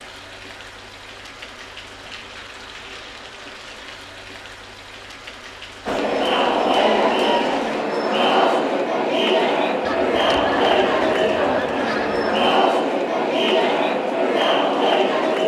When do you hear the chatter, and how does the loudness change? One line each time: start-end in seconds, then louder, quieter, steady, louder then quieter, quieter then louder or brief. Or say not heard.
5.8-15.4 steady.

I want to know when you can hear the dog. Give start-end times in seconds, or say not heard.
not heard.